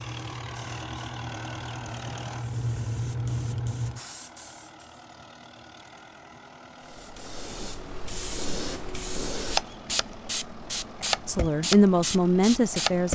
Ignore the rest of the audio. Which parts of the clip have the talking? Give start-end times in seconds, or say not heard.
11.2-13.1.